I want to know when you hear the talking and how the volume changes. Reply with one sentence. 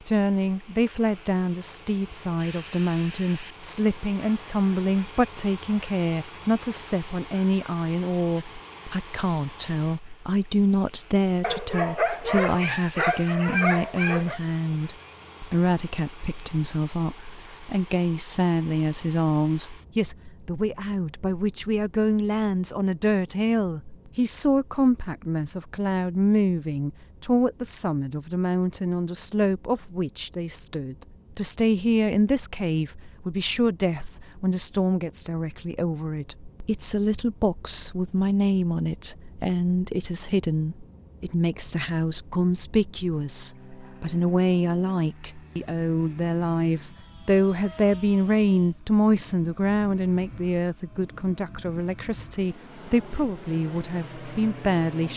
The talking can be heard from 0.1 to 55.1 s, at a steady volume.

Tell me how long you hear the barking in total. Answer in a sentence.
You can hear the barking for 3 seconds altogether.